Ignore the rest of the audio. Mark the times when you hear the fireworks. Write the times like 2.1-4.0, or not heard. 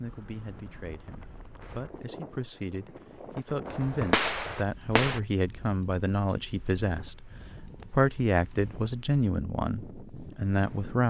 3.6-5.2.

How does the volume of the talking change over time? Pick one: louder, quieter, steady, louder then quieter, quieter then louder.
louder.